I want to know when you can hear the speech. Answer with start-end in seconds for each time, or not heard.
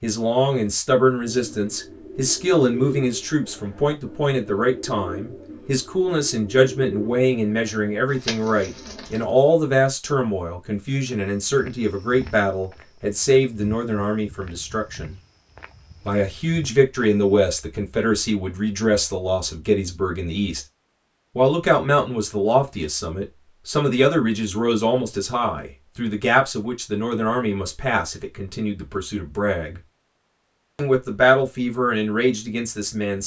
0.0-15.2, 16.1-20.6, 21.4-29.8, 30.8-33.2.